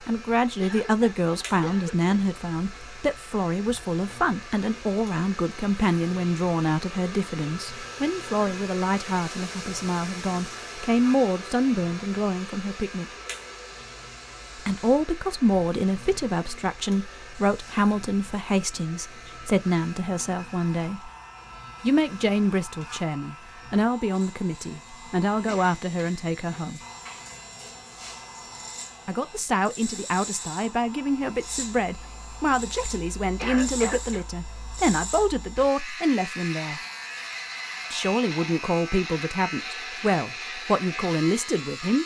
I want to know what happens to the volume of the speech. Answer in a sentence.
The loudness of the speech stays about the same.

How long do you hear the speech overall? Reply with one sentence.
The speech can be heard for 36 seconds in total.